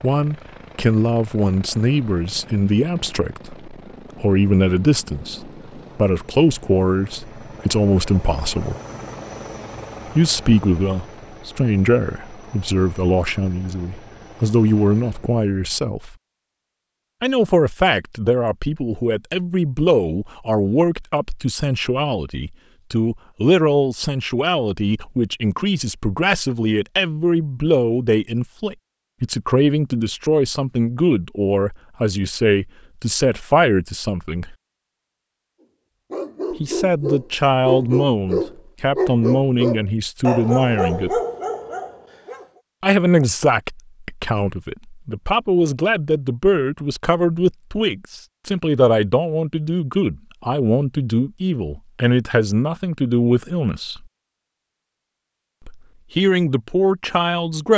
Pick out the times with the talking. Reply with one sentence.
You can hear the talking from 0.0 to 8.8 s, from 10.1 to 16.1 s, from 17.2 to 34.5 s, from 36.5 to 41.2 s, from 42.8 to 54.0 s and from 55.6 to 57.7 s.